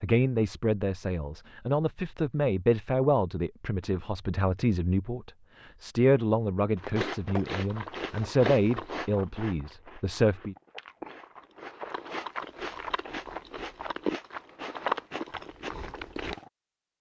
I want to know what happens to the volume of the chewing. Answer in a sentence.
The volume of the chewing goes down, then up.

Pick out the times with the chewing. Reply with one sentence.
You can hear the chewing from 6.8 to 16.5 s.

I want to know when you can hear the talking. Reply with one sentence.
The talking can be heard from 0.0 to 10.6 s.